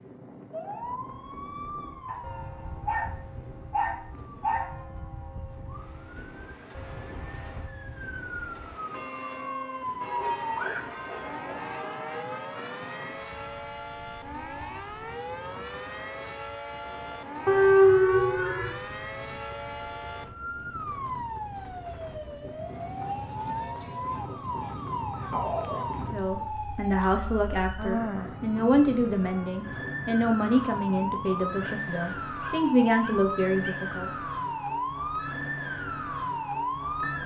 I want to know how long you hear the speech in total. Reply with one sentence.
The speech can be heard for 8 seconds in total.